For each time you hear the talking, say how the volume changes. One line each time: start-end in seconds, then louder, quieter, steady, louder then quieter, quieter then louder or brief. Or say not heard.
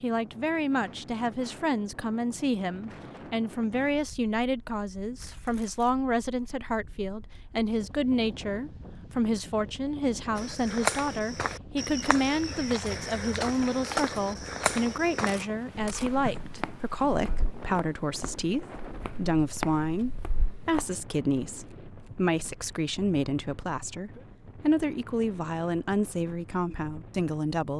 0.0-27.7 steady.